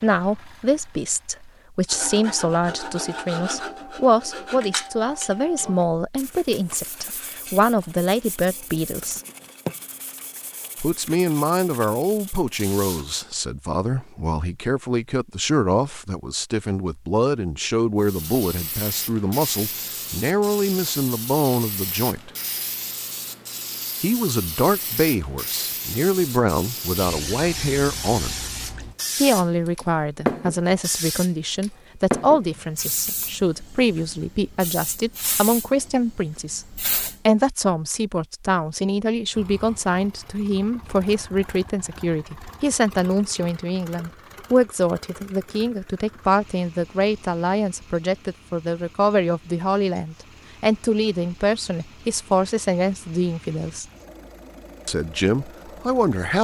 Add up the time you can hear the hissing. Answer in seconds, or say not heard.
19 s.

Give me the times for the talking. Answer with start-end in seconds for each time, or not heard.
0.0-9.2, 10.8-22.3, 24.0-28.4, 29.1-53.9, 54.9-56.3.